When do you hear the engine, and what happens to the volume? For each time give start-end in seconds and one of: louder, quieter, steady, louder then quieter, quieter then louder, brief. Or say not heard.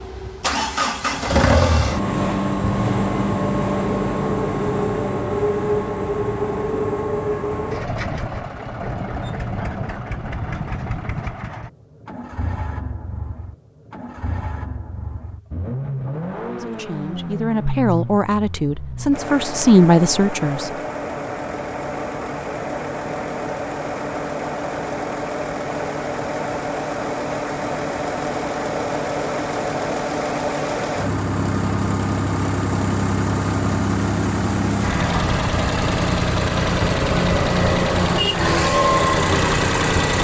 0.0-40.1 quieter then louder.